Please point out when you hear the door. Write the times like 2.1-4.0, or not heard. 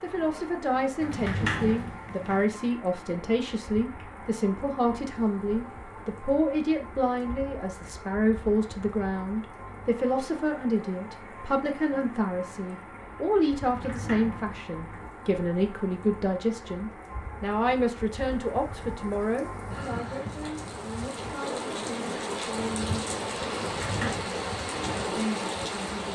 1.0-2.5, 13.6-15.1, 23.6-24.2.